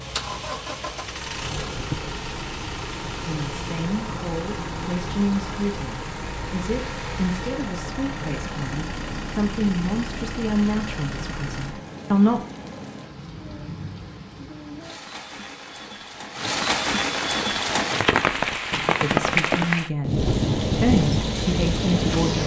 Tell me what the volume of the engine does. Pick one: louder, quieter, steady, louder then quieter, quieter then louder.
steady.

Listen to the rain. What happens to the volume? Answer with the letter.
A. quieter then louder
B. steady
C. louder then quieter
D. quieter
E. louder
E.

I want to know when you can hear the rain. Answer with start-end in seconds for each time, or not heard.
0.0-22.4.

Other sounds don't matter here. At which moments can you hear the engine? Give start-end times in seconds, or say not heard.
0.0-11.8.